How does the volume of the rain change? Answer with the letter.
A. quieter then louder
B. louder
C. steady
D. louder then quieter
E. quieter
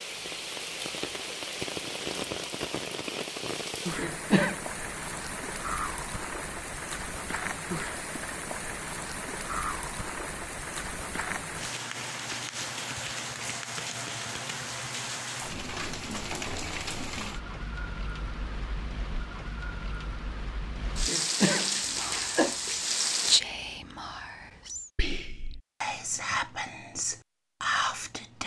C.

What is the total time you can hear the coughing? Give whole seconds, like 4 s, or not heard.
2 s.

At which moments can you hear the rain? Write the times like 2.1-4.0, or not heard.
0.0-23.4.